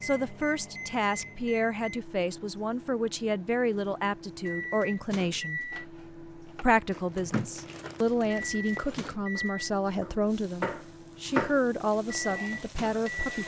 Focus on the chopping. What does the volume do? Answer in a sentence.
The loudness of the chopping goes up.